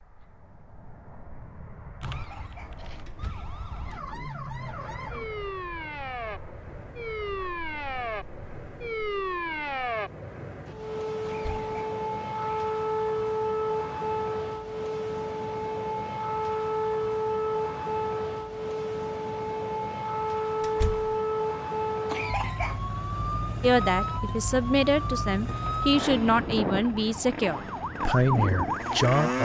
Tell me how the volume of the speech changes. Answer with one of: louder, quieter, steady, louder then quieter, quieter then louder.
steady.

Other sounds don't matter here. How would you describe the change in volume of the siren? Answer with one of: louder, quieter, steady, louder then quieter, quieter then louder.
louder.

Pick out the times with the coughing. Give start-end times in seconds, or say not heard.
2.0-3.5, 11.2-12.7, 22.1-22.9.